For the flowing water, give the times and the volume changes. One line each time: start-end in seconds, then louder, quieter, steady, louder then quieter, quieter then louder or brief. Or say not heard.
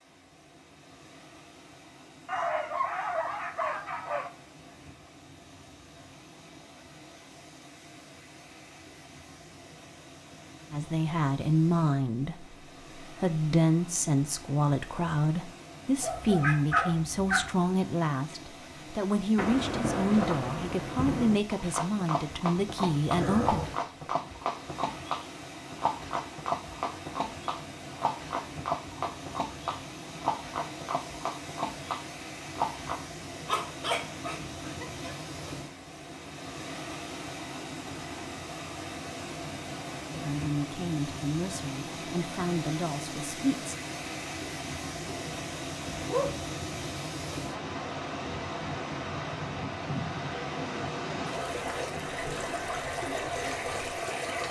0.0-54.4 louder.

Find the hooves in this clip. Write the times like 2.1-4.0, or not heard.
21.5-33.0.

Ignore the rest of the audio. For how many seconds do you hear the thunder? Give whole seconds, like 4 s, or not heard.
4 s.